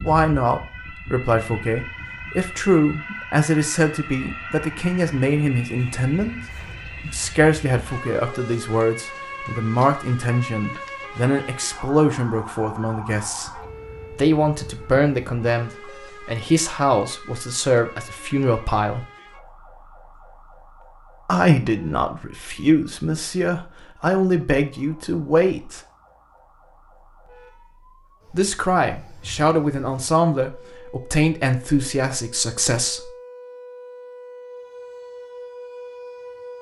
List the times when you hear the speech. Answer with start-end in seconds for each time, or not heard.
0.0-6.4, 7.0-19.1, 21.2-25.8, 28.3-33.1.